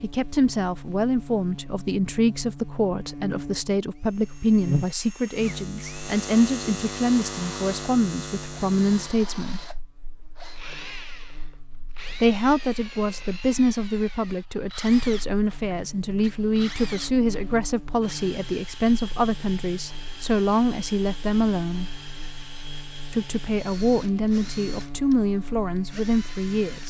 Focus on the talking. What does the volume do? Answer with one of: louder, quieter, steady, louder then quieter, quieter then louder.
steady.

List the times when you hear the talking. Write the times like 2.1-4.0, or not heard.
0.0-9.6, 12.1-21.9, 23.1-26.8.